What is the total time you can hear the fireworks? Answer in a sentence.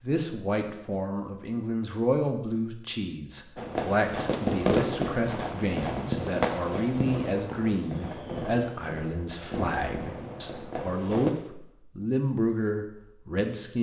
You can hear the fireworks for 8 seconds altogether.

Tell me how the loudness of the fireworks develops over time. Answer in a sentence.
The loudness of the fireworks goes down.